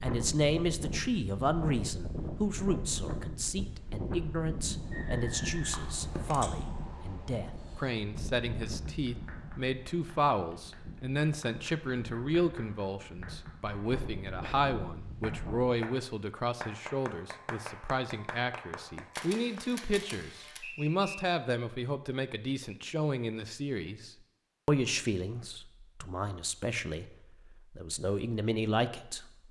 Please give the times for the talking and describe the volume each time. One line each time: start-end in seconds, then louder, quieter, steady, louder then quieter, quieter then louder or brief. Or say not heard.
0.0-29.2 steady.